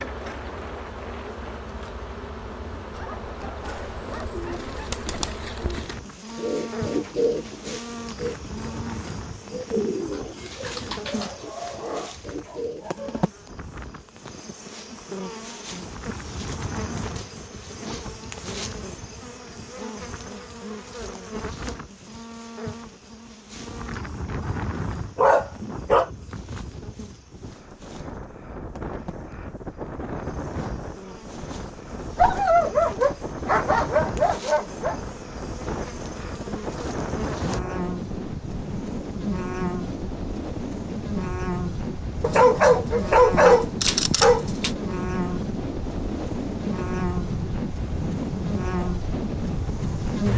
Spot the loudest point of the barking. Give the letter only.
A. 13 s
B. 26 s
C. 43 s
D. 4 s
C.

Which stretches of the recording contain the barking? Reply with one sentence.
The barking can be heard from 2.9 to 4.8 s, from 11.1 to 13.2 s, from 25.1 to 26.1 s, from 32.1 to 35.0 s and from 42.2 to 44.7 s.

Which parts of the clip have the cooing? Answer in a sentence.
You can hear the cooing from 3.6 to 13.2 s.